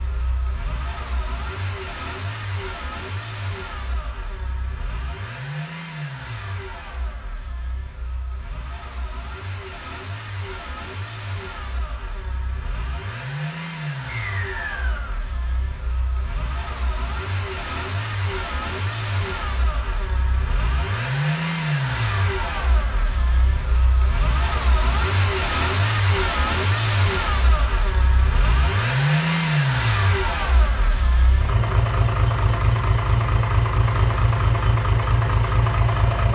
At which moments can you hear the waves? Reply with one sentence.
The waves can't be heard in this clip.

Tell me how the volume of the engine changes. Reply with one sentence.
The loudness of the engine goes up.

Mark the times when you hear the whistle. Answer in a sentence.
The whistle can be heard from 14.1 to 15.1 s.